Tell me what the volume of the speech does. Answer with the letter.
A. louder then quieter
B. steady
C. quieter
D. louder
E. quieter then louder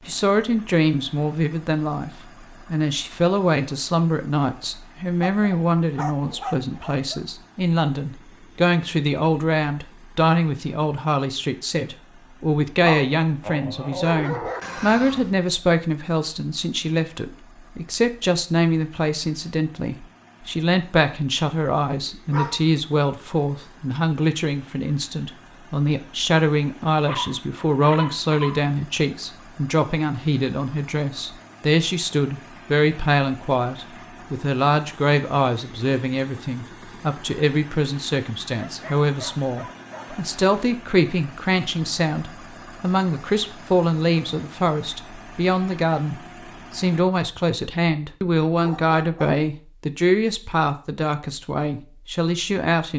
B.